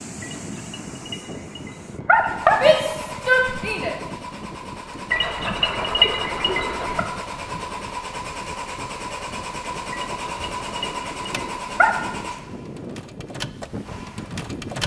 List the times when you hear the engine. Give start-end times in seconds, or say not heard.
2.1-14.8.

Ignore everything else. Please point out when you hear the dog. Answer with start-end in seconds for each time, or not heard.
0.2-2.7, 5.1-7.0, 9.9-11.9.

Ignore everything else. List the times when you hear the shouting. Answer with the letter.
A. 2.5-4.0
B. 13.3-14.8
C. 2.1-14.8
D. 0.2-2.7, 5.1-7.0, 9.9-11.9
A.